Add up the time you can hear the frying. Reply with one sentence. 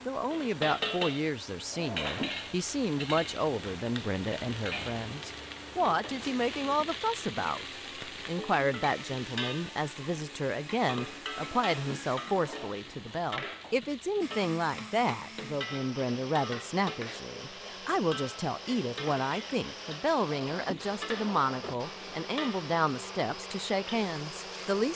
The frying can be heard for 25 seconds in total.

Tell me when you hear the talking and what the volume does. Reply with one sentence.
You can hear the talking from 0.1 to 24.9 s, at a steady volume.